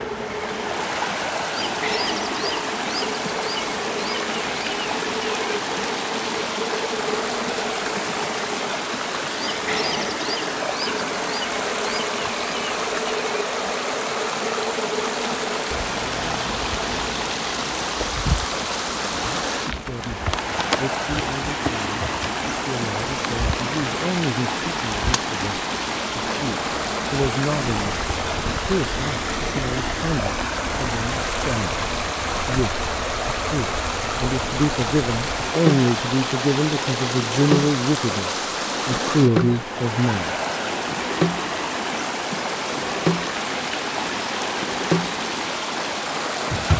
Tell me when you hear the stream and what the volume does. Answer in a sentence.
The stream can be heard from 0.0 to 46.7 s, at a steady volume.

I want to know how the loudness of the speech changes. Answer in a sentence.
The loudness of the speech goes up.